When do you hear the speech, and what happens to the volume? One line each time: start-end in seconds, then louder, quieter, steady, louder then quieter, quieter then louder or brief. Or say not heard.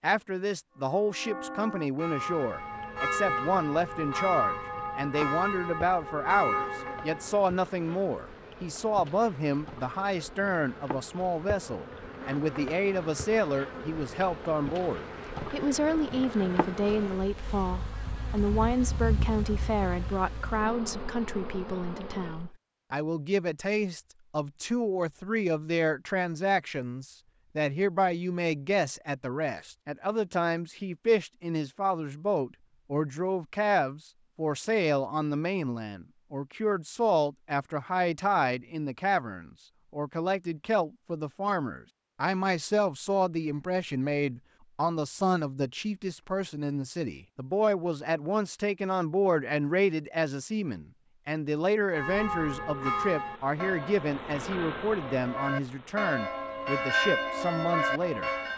0.0-58.3 steady.